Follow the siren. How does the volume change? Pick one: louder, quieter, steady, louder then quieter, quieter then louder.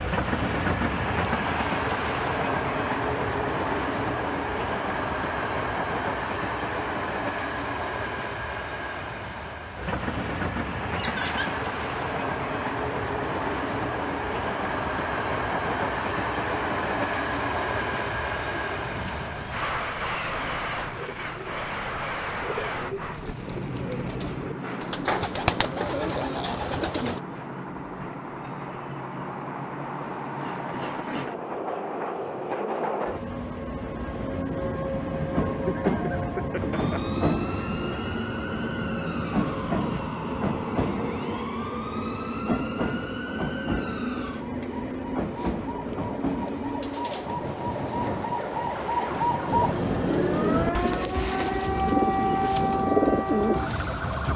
louder.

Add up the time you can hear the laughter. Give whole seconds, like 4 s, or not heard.
2 s.